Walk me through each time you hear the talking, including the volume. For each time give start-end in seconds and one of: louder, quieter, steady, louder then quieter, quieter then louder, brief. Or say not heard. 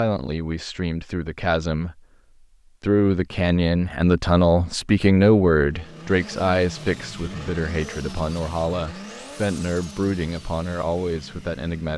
0.0-2.0 brief
2.8-11.9 quieter.